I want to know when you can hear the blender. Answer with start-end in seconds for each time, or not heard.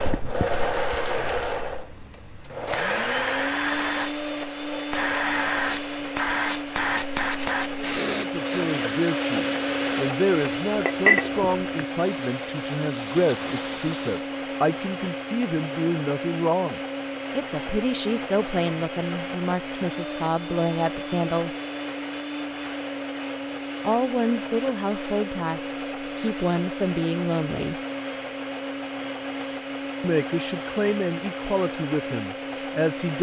0.0-33.1.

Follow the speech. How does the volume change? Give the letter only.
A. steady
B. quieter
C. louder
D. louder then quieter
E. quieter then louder
A.